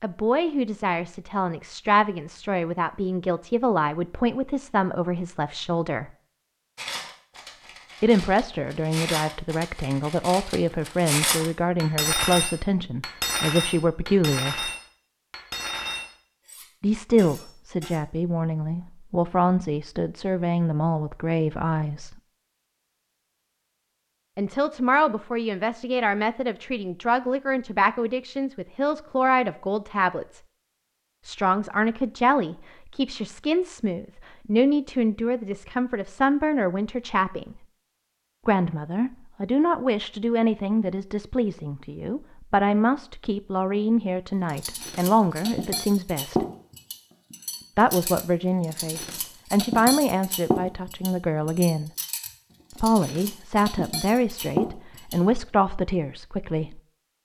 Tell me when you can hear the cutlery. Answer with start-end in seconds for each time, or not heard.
6.8-18.0, 44.5-55.2.